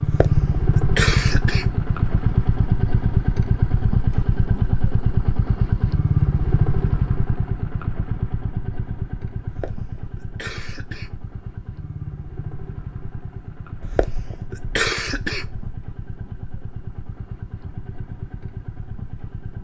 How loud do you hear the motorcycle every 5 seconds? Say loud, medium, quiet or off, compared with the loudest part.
loud, loud, quiet, quiet.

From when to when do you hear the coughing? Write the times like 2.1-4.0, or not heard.
0.0-1.9, 9.4-11.3, 13.8-15.7.